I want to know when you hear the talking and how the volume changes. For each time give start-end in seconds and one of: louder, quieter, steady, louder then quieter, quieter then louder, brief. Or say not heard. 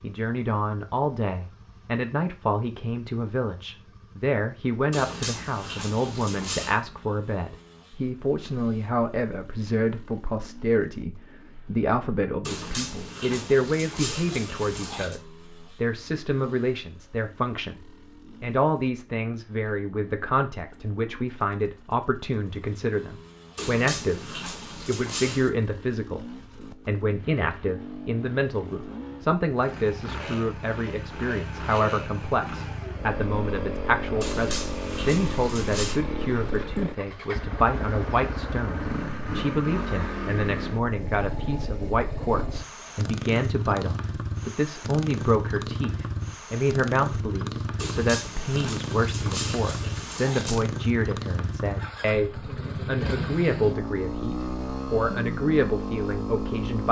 0.0-24.2 steady
24.9-26.2 brief
26.9-56.8 steady.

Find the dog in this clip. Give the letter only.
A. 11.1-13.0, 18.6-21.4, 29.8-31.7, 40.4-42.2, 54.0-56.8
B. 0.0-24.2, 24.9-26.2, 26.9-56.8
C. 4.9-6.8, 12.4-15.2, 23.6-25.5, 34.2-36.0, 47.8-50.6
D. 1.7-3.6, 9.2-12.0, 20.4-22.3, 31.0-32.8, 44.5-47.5
C.